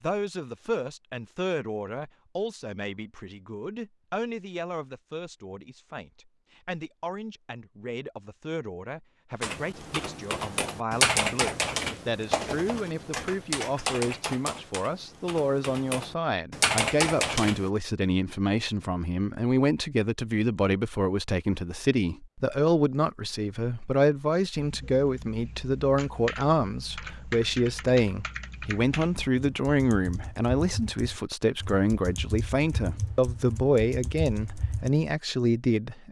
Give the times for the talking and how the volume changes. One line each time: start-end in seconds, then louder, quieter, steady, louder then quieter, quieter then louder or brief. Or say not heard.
0.0-36.0 louder.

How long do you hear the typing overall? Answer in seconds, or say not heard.
19 s.